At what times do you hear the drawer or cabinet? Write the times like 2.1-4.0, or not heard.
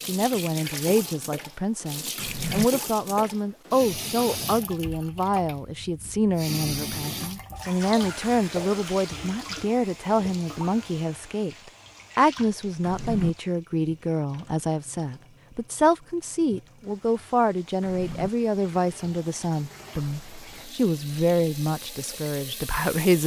2.1-2.7, 12.8-13.3, 17.8-18.3.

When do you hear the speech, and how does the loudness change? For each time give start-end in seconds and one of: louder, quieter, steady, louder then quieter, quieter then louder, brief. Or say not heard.
0.0-23.2 steady.